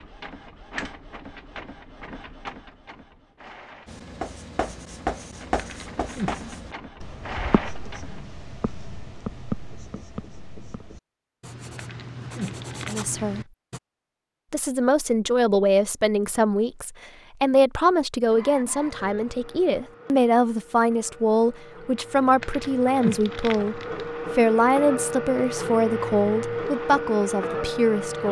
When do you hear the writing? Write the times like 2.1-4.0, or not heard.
3.9-13.8.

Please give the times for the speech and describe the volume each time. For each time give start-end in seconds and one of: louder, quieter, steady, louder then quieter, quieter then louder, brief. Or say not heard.
12.8-13.4 brief
14.5-28.2 steady.